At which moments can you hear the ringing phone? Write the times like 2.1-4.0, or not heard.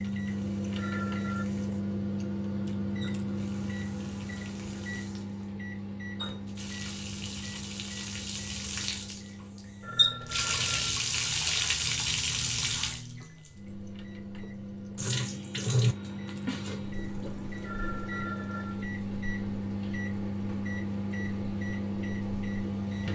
0.8-1.4, 9.8-11.0, 17.6-18.9.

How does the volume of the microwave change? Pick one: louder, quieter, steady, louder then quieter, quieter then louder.
quieter then louder.